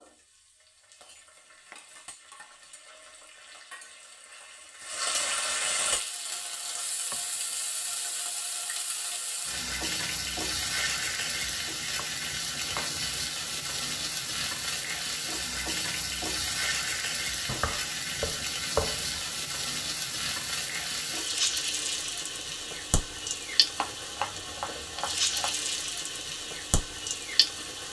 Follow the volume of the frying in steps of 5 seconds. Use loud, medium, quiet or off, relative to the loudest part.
quiet, loud, loud, loud, loud, loud.